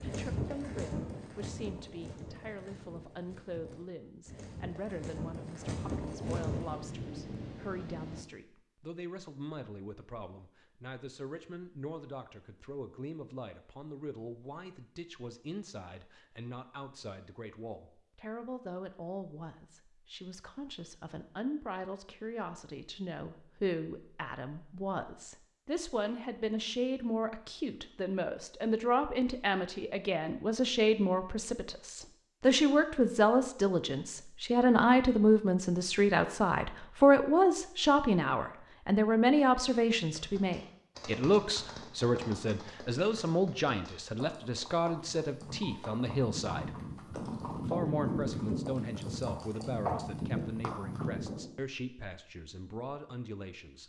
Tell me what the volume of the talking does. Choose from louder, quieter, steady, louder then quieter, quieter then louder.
louder then quieter.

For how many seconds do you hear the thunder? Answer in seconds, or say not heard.
2 s.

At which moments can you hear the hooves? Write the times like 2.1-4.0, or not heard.
0.0-6.8, 40.0-51.5.